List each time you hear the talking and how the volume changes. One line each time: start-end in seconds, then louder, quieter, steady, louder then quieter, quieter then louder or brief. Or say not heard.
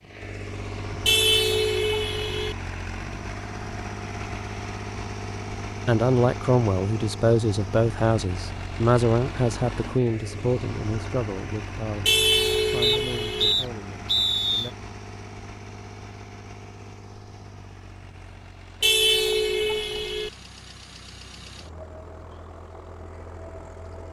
5.8-14.8 quieter.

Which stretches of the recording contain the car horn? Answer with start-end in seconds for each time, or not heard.
1.1-2.5, 12.1-13.6, 18.8-20.3.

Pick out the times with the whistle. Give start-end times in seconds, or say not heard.
12.8-14.7.